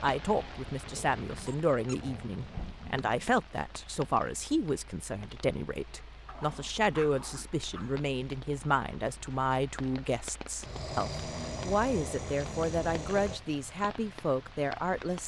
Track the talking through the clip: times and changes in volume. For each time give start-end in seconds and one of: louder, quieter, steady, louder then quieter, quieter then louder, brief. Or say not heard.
0.0-15.2 steady.